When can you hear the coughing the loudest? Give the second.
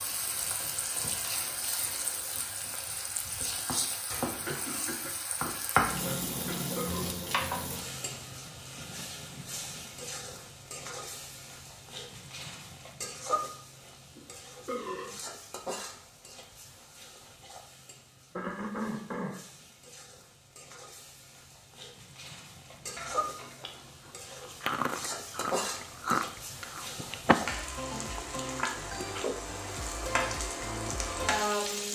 19 s.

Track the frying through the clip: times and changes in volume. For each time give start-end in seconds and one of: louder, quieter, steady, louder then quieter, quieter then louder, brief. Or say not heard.
0.0-31.9 quieter then louder.